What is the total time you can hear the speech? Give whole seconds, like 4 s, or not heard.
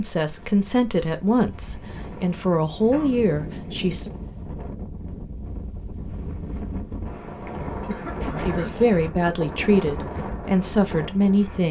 7 s.